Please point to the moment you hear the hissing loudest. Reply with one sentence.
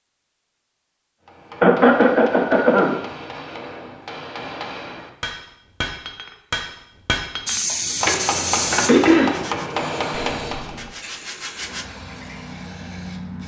The volume of the hissing peaks at 8 seconds.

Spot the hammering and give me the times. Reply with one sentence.
You can hear the hammering from 1.2 to 10.8 s.